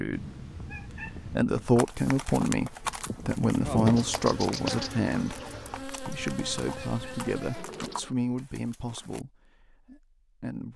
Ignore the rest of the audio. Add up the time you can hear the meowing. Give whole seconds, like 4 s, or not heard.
2 s.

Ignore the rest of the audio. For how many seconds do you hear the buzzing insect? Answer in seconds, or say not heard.
8 s.